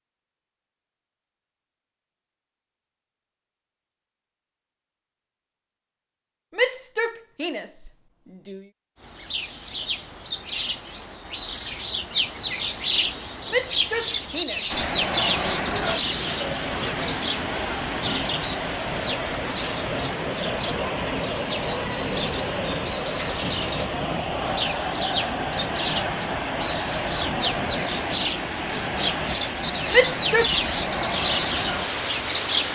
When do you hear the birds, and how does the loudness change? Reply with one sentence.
You can hear the birds from 8.9 to 32.7 s, getting quieter then louder.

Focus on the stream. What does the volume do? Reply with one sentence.
The volume of the stream stays about the same.